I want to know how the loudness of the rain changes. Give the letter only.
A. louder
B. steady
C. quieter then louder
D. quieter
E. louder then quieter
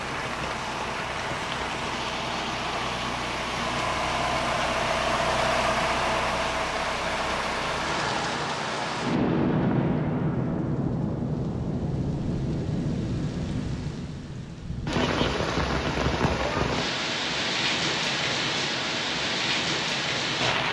A.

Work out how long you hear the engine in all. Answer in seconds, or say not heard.
8 s.